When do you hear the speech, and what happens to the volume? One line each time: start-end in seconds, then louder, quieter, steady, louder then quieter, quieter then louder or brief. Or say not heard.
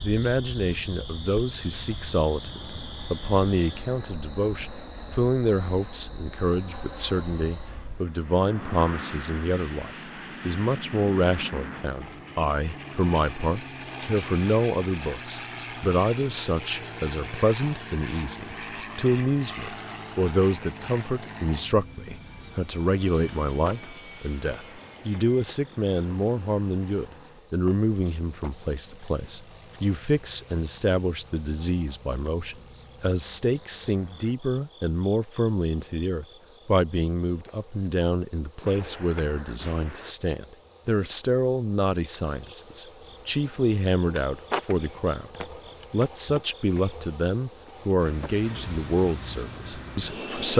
0.0-50.5 steady.